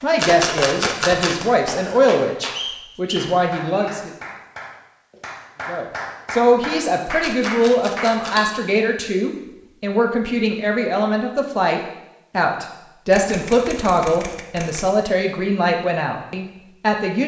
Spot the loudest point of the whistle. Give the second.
3 s.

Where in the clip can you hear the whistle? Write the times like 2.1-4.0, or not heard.
2.5-4.0.